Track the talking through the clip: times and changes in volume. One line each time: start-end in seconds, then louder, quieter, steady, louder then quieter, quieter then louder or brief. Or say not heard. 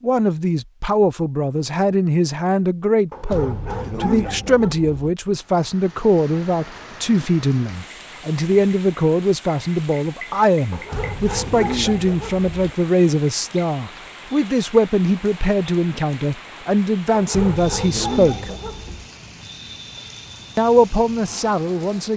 0.0-18.5 steady
20.6-22.1 brief.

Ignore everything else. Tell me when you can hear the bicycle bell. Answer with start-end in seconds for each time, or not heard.
not heard.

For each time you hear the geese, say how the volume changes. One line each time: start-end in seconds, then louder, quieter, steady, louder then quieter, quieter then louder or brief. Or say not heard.
not heard.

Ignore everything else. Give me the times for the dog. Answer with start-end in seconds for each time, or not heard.
3.1-5.1, 10.7-12.8, 17.1-19.1.